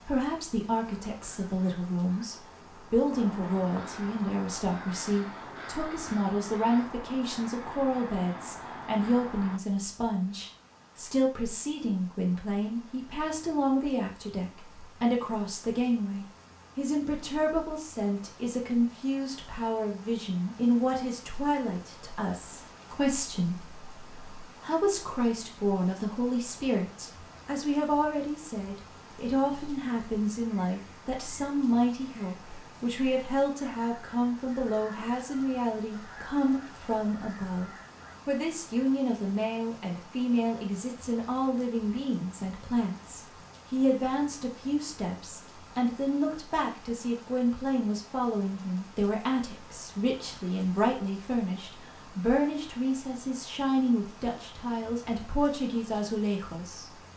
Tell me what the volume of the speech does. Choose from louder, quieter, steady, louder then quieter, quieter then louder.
steady.